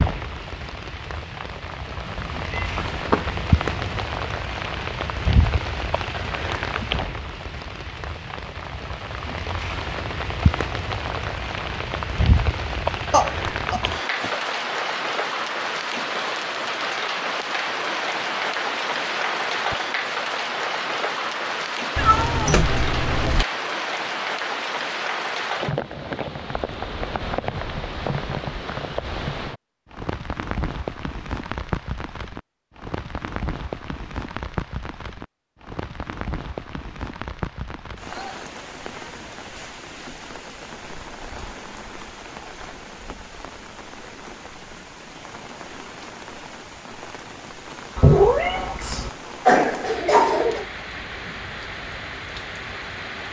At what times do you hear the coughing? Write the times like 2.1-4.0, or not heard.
13.1-14.3, 48.5-50.6.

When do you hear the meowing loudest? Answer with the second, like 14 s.
48 s.